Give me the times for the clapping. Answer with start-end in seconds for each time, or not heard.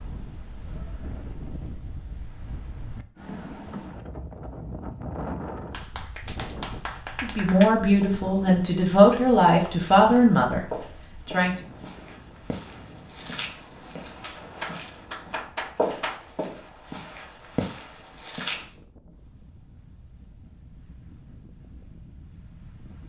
5.7-7.8, 14.6-16.3.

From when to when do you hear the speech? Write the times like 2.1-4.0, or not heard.
7.2-11.5.